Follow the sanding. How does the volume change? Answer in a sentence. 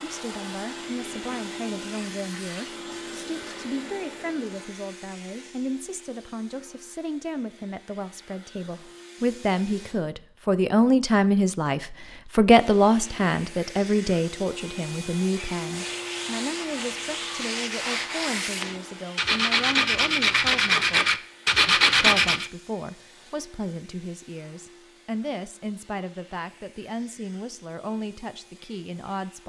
The loudness of the sanding goes up.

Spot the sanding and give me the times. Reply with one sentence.
The sanding can be heard from 15.6 to 22.5 s.